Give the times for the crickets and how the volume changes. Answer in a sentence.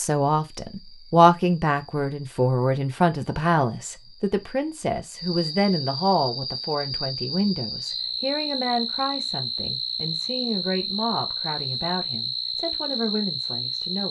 The crickets can be heard from 0.2 to 14.0 s, getting louder.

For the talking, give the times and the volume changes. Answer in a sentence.
The talking can be heard from 0.0 to 14.0 s, getting quieter.